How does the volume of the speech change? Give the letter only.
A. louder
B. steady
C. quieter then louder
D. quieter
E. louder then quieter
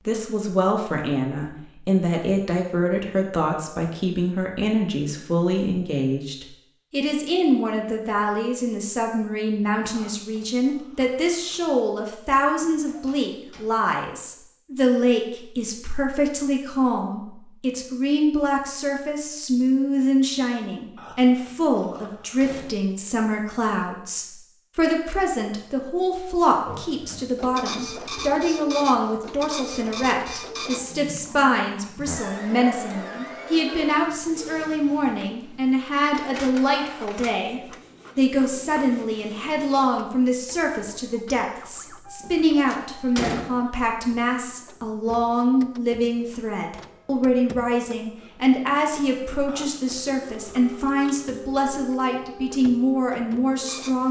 B.